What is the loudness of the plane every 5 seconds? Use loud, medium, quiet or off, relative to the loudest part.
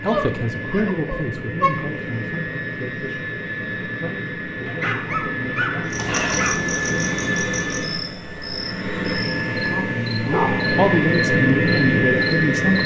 medium, medium, loud.